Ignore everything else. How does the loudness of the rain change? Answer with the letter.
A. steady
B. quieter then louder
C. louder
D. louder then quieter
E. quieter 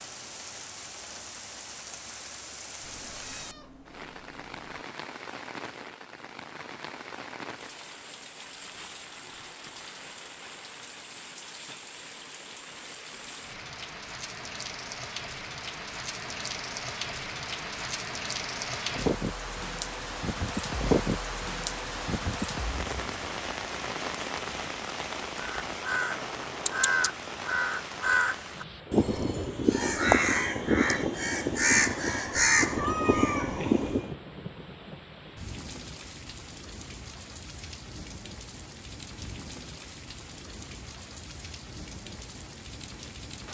D.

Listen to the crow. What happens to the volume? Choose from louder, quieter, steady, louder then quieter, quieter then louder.
steady.